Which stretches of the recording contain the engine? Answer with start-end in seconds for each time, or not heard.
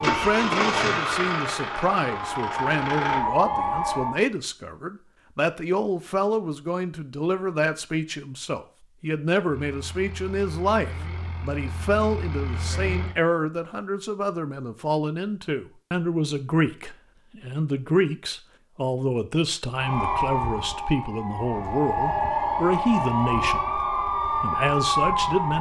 0.0-3.2, 9.4-13.2.